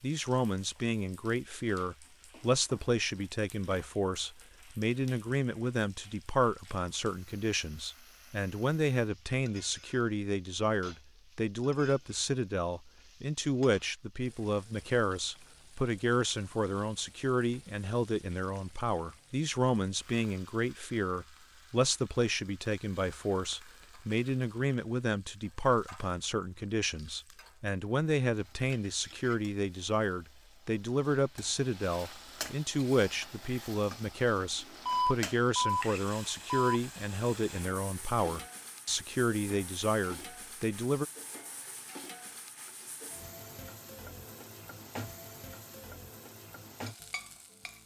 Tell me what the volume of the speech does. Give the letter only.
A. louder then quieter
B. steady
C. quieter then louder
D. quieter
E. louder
B.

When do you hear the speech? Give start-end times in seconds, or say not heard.
0.0-41.0.